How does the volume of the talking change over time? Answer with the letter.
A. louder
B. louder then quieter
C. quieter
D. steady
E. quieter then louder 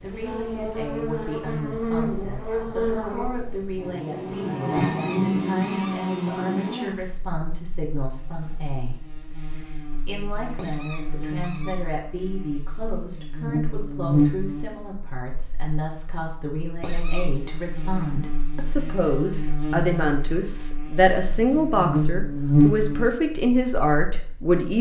A.